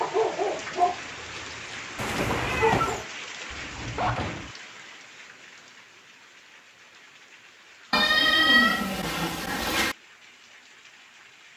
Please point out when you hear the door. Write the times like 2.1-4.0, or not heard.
3.5-4.5.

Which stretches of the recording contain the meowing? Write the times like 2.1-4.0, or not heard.
1.9-3.0, 7.9-9.9.